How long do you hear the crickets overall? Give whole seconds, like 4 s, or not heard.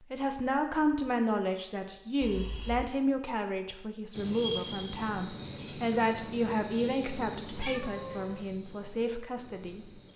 6 s.